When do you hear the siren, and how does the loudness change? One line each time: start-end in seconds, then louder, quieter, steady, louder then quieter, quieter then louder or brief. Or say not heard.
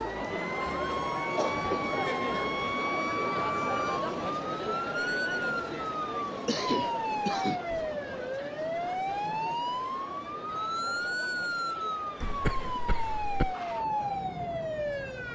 0.0-15.3 steady.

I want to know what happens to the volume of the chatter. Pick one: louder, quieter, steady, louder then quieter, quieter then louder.
quieter.